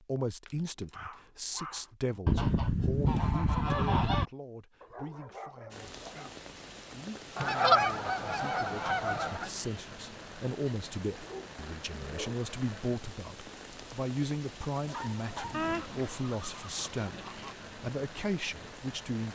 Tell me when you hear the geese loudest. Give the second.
8 s.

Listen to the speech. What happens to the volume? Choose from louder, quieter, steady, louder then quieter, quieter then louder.
quieter then louder.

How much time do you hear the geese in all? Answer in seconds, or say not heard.
6 s.